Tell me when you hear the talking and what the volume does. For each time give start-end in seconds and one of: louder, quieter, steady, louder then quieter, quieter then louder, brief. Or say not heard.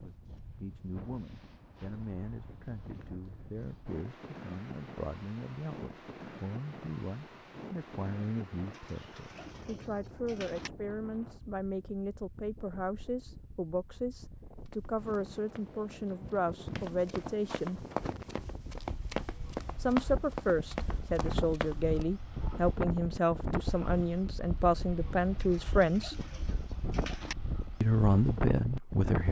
0.0-17.9 louder
19.8-26.2 steady
27.8-29.2 brief.